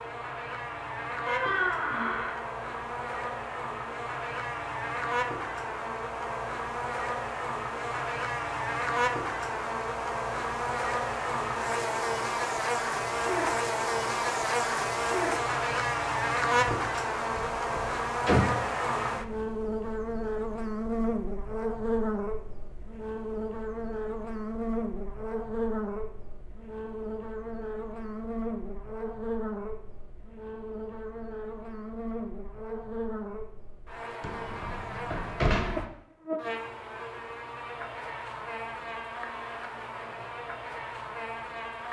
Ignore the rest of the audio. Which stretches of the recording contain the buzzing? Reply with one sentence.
The buzzing can be heard from 0.0 to 41.8 s.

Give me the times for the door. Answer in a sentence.
You can hear the door from 1.2 to 2.4 s, from 16.6 to 18.6 s and from 34.2 to 35.9 s.